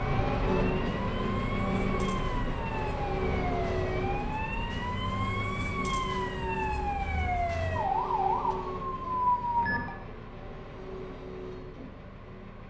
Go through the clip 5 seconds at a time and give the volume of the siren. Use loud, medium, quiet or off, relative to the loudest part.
medium, loud, off.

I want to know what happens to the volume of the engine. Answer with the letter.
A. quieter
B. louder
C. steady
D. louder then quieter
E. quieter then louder
A.